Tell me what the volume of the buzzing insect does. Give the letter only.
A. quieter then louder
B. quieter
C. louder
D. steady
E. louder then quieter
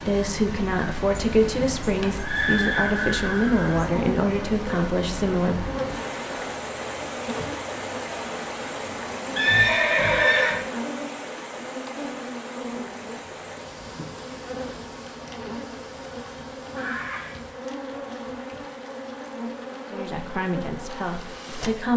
D.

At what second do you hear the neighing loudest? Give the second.
10 s.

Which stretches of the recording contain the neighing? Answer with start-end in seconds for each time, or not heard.
1.4-3.9, 9.3-10.6, 16.8-17.4.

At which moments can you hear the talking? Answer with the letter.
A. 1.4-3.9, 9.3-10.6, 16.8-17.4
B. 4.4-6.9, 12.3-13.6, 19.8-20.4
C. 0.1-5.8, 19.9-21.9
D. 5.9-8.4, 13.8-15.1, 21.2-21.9
C.